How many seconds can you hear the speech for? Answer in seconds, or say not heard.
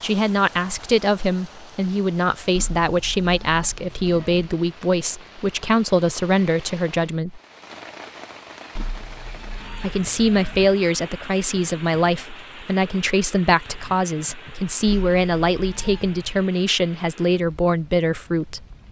16 s.